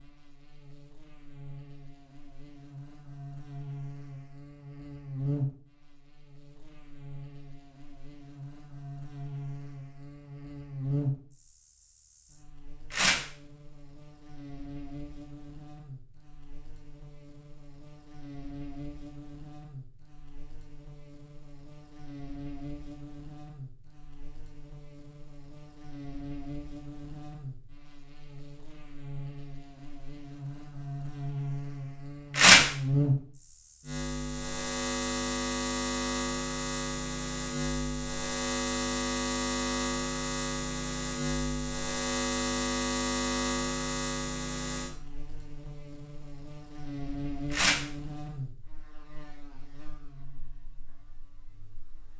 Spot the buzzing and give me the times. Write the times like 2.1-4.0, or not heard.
0.0-52.1.